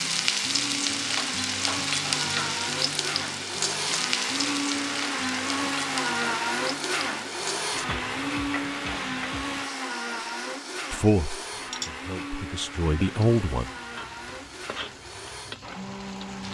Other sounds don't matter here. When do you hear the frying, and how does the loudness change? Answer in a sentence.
The frying can be heard from 0.0 to 16.4 s, getting quieter.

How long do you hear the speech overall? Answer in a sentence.
You can hear the speech for 3 seconds altogether.